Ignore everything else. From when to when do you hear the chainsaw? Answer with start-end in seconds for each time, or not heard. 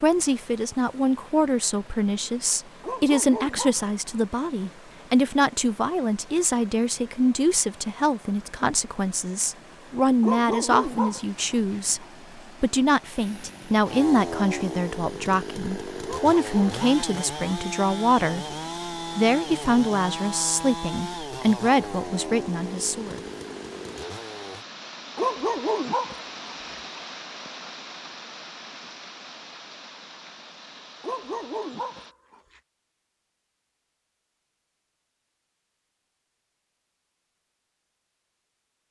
13.2-24.6.